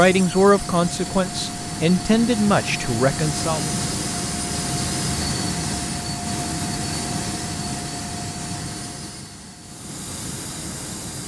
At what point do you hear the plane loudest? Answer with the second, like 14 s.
5 s.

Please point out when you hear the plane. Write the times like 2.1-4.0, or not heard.
0.0-11.2.